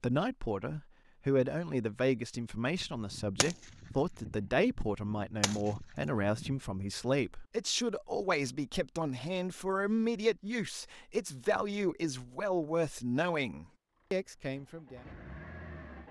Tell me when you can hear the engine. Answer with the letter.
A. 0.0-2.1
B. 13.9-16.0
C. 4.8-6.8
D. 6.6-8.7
B.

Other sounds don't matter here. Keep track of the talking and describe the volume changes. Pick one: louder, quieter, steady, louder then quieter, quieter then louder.
steady.